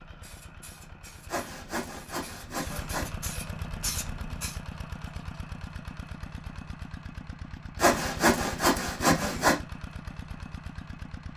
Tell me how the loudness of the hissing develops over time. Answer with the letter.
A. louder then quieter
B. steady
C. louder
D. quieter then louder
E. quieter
C.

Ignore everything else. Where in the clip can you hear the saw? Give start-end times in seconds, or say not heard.
1.2-3.0, 7.8-9.6.